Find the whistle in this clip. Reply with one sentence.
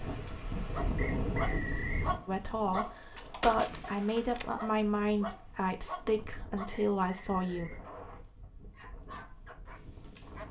The whistle can be heard from 0.9 to 2.1 s and from 6.7 to 7.8 s.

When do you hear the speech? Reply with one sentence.
The speech can be heard from 2.2 to 7.7 s.